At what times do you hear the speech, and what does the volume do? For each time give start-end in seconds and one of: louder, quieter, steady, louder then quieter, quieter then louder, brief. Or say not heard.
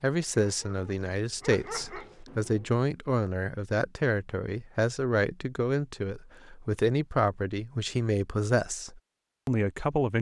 0.0-10.1 steady.